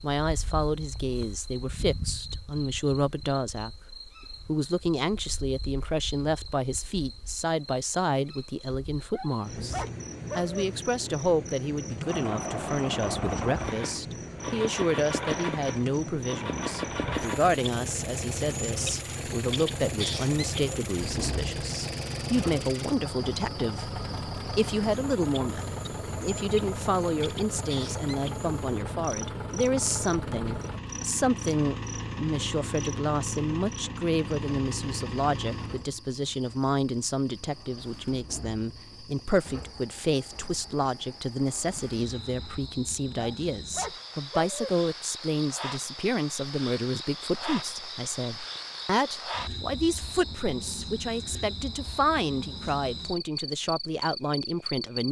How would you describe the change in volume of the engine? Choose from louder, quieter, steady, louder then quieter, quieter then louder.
quieter.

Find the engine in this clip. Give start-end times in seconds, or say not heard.
12.1-42.6.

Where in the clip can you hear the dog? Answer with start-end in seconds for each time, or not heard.
9.1-10.7, 43.1-44.8.